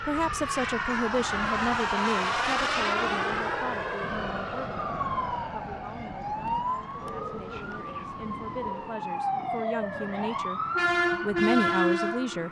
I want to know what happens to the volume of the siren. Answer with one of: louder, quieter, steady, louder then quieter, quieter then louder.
louder.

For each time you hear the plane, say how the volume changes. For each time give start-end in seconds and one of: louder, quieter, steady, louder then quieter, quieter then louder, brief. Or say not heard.
0.0-12.4 quieter.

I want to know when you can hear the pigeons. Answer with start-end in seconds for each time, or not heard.
7.0-9.1.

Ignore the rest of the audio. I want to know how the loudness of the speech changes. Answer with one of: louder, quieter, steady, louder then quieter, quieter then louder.
quieter then louder.